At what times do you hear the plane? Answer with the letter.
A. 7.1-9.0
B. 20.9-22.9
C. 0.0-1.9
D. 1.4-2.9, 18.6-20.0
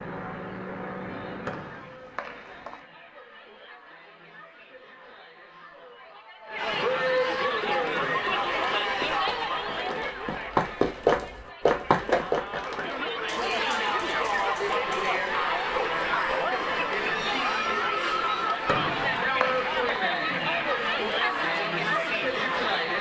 C.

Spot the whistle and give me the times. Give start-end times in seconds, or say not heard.
1.4-2.9, 18.6-20.0.